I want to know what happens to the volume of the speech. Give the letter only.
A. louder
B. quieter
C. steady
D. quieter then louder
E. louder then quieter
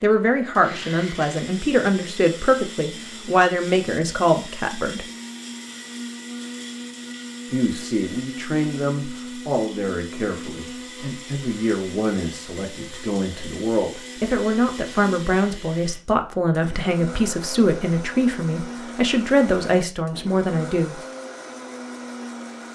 D.